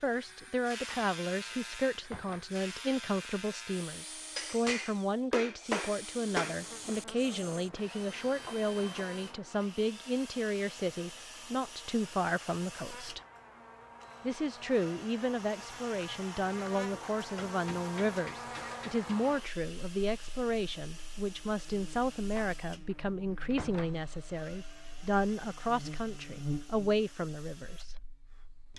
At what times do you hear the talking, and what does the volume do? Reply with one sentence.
You can hear the talking from 0.0 to 13.2 s, at a steady volume; and from 14.2 to 28.0 s, at a steady volume.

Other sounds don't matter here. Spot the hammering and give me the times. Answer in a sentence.
You can hear the hammering from 4.3 to 6.5 s and from 17.4 to 19.2 s.